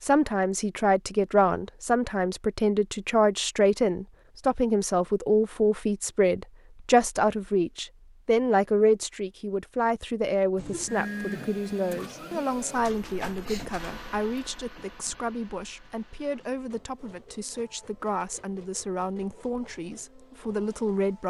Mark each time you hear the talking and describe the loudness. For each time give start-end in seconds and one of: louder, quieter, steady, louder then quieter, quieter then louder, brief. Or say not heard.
0.0-21.2 quieter.